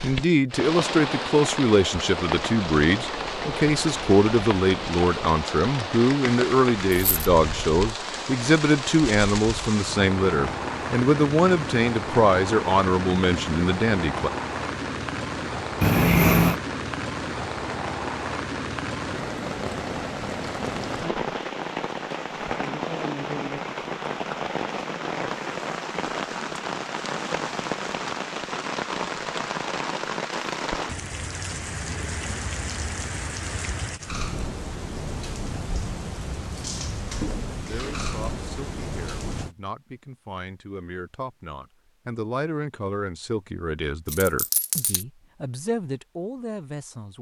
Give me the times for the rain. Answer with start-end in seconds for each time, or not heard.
0.0-39.5.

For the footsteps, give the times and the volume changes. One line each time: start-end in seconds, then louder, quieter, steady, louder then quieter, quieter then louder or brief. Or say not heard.
not heard.